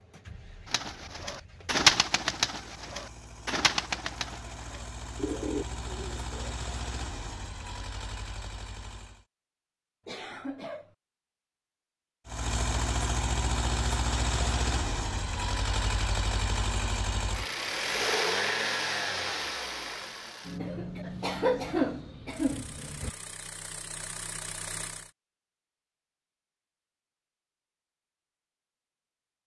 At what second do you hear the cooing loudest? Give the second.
2 s.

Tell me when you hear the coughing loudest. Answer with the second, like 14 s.
22 s.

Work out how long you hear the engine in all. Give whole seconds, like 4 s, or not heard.
22 s.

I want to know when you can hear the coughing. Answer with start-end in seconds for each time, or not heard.
10.1-10.9, 20.6-23.1.